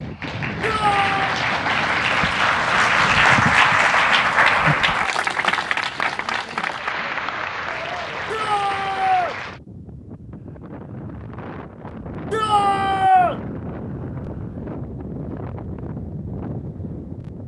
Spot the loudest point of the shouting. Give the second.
13 s.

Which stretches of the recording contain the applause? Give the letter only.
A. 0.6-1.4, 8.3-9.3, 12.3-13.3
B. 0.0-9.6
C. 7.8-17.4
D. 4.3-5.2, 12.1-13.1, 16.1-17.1
B.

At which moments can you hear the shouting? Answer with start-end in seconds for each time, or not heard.
0.6-1.4, 8.3-9.3, 12.3-13.3.